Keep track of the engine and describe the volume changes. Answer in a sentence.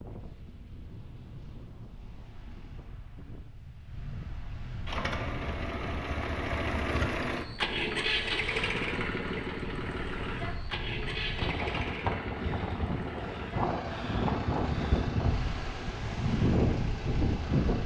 The loudness of the engine goes down.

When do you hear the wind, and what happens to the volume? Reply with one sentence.
You can hear the wind from 0.0 to 17.8 s, getting louder.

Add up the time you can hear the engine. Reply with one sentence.
You can hear the engine for 13 seconds altogether.